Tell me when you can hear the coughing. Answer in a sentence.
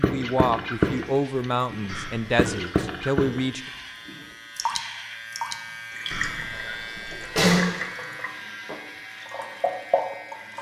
You can hear the coughing from 1.9 to 2.7 s and from 6.1 to 7.7 s.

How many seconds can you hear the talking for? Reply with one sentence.
You can hear the talking for 4 seconds altogether.